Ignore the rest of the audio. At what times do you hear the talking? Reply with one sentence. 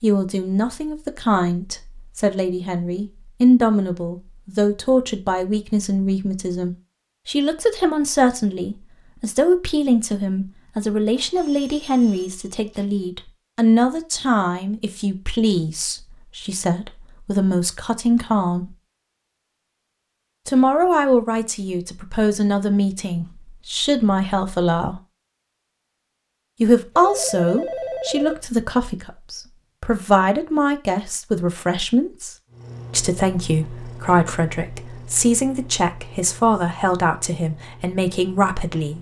The talking can be heard from 0.0 to 18.8 s, from 20.4 to 25.0 s and from 26.6 to 38.9 s.